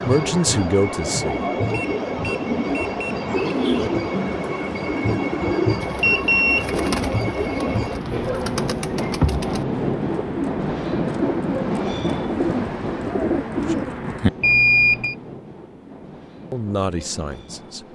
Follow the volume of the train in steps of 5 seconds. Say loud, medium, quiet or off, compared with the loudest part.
loud, loud, loud, quiet.